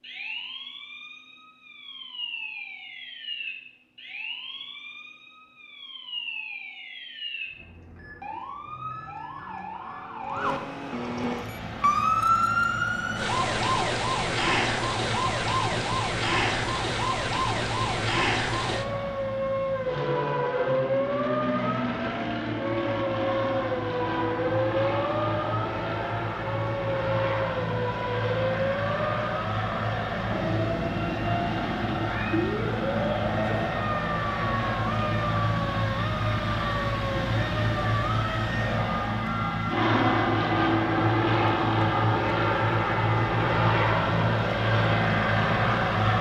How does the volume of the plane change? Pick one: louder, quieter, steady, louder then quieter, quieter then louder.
louder.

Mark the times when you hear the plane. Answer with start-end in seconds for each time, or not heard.
11.2-46.1.